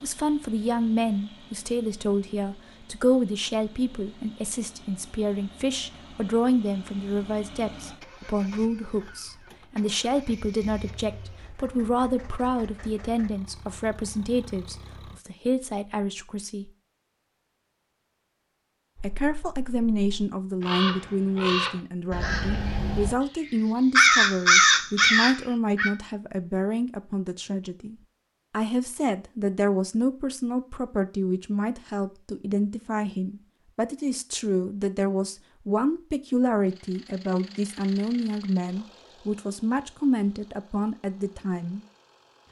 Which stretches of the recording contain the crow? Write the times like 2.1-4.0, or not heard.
18.9-25.9.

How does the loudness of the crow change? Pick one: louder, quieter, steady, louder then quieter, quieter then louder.
louder.